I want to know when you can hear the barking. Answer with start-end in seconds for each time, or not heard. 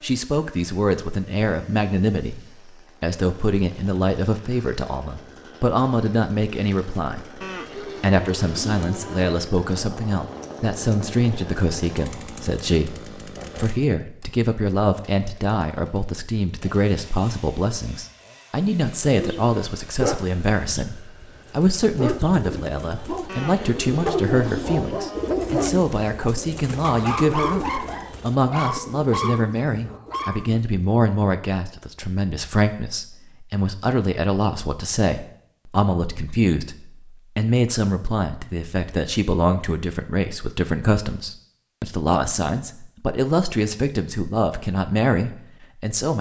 19.0-30.5.